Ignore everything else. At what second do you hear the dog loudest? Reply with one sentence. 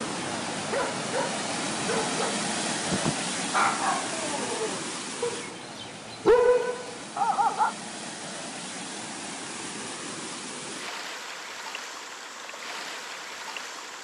The loudest moment of the dog is at 6 seconds.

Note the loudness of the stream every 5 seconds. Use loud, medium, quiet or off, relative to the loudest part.
loud, medium, medium.